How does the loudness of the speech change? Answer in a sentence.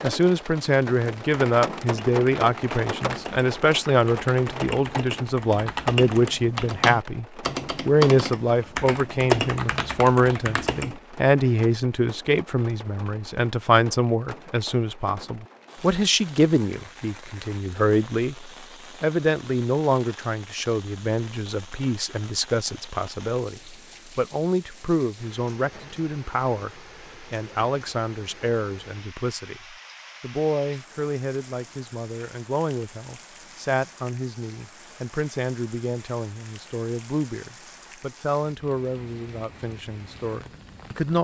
The loudness of the speech goes down.